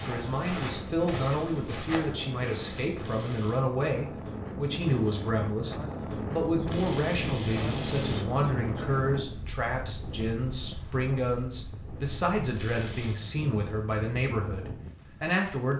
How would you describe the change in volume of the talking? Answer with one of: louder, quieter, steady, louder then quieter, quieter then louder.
steady.